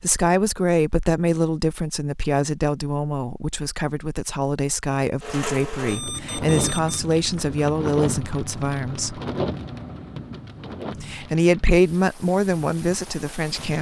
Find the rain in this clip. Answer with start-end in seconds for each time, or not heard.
5.2-13.7.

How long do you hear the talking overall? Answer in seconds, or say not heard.
12 s.